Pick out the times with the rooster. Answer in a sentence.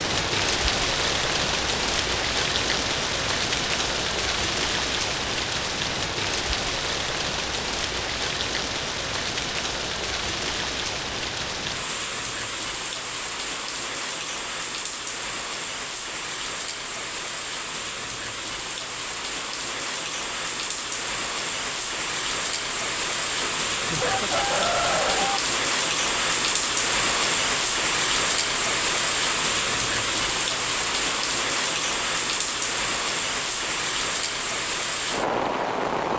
You can hear the rooster from 23.4 to 25.4 s.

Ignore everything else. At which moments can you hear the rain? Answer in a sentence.
The rain can be heard from 0.0 to 36.1 s.